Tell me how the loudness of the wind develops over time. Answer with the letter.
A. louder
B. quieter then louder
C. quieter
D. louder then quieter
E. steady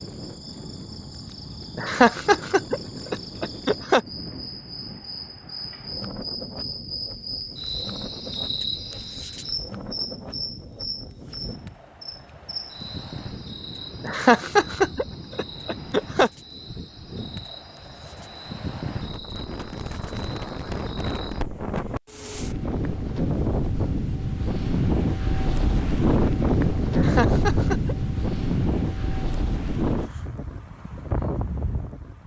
A.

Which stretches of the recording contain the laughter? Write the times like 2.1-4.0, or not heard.
1.8-4.0, 14.0-16.3, 26.9-27.9.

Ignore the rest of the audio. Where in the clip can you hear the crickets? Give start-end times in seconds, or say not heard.
0.0-21.4.